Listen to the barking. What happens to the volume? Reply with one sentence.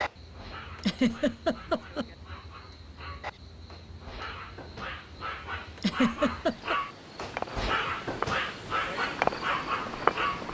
The loudness of the barking goes up.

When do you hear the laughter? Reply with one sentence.
You can hear the laughter from 0.8 to 2.0 s and from 5.8 to 6.8 s.